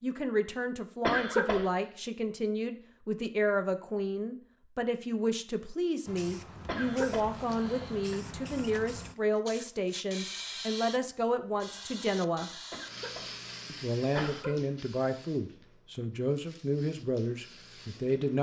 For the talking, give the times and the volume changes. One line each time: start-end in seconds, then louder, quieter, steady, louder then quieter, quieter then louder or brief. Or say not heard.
0.0-12.6 steady
13.7-18.3 steady.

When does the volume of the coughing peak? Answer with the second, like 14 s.
1 s.